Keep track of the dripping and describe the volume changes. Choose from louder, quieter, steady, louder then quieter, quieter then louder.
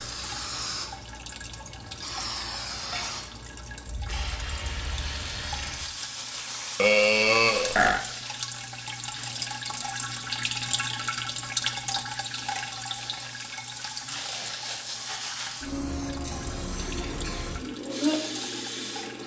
louder then quieter.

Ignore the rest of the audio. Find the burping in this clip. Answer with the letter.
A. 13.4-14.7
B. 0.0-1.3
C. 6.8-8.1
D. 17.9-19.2
C.